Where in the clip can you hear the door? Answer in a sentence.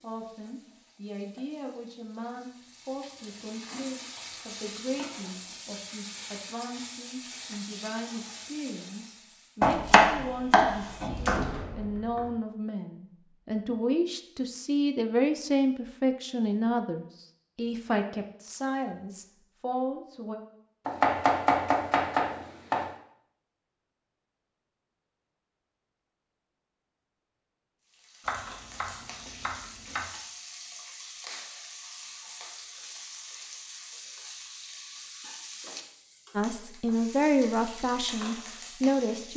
You can hear the door from 11.0 to 12.3 s.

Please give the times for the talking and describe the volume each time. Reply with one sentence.
You can hear the talking from 0.0 to 20.4 s, getting louder; and briefly from 36.4 to 39.3 s.